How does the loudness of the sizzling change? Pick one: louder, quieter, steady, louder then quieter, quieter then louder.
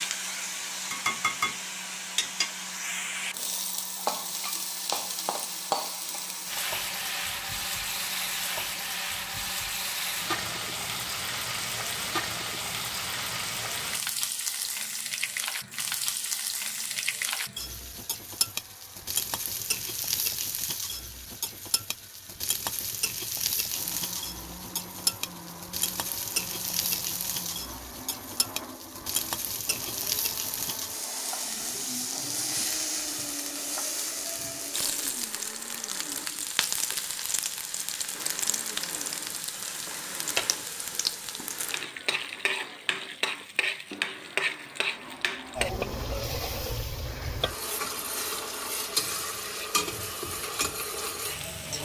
steady.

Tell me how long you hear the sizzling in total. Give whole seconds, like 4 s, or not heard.
52 s.